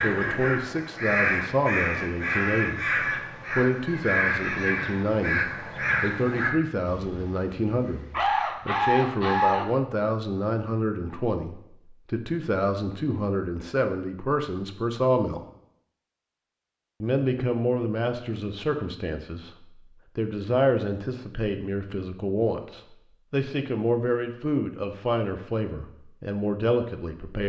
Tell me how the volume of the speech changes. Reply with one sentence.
The loudness of the speech stays about the same.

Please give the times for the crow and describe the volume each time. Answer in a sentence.
You can hear the crow from 0.0 to 9.7 s, at a steady volume.